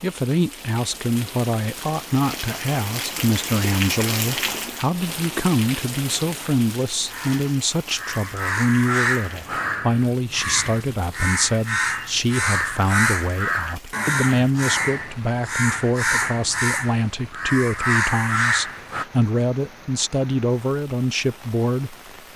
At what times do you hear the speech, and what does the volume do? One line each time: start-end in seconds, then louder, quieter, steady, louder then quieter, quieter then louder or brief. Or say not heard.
0.0-22.3 steady.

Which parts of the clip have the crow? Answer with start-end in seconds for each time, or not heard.
7.0-19.1.